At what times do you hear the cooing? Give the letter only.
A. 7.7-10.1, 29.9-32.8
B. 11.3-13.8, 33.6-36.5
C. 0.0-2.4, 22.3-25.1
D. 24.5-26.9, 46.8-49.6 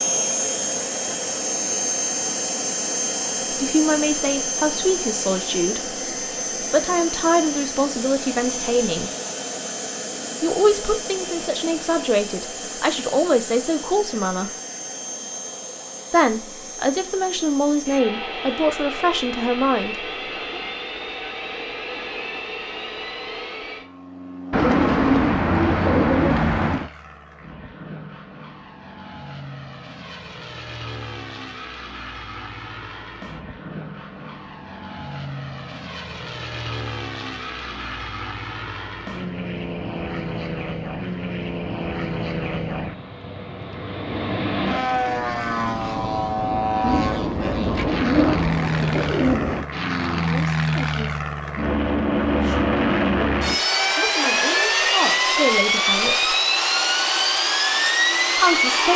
D.